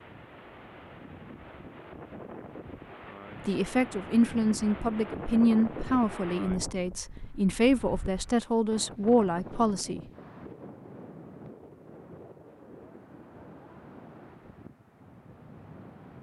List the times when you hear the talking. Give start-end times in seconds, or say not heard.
3.5-10.0.